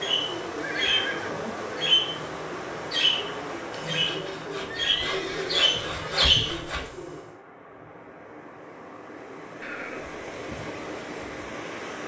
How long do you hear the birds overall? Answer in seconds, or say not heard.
7 s.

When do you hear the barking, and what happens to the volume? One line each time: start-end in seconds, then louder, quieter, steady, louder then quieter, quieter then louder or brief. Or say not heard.
not heard.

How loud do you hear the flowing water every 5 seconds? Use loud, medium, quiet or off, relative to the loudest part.
loud, medium, loud.